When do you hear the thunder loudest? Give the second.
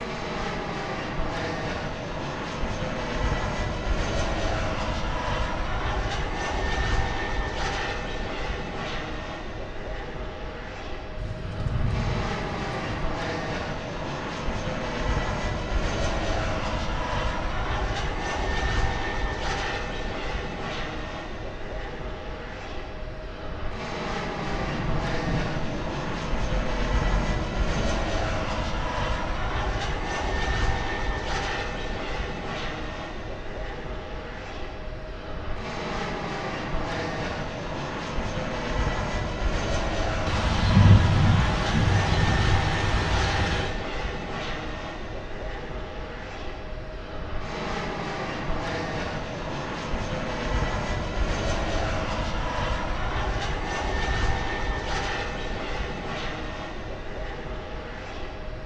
41 s.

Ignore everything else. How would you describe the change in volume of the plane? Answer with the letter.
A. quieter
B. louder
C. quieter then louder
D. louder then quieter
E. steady
E.